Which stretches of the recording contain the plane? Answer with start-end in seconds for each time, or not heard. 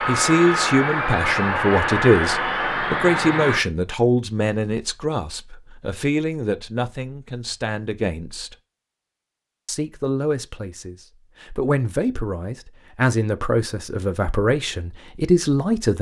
0.0-3.6.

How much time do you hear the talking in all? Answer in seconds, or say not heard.
15 s.